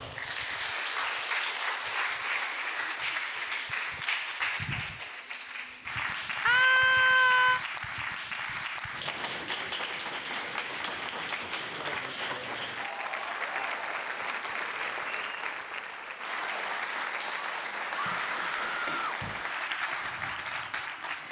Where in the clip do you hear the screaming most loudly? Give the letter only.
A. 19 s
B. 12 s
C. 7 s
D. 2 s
C.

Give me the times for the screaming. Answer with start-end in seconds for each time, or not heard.
6.5-7.6, 17.9-19.2.